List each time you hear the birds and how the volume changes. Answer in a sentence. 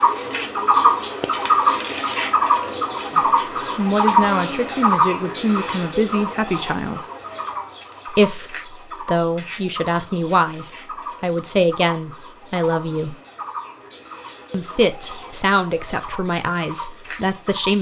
You can hear the birds from 0.0 to 17.7 s, getting quieter.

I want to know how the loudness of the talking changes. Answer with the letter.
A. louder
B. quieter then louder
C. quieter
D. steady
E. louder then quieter
D.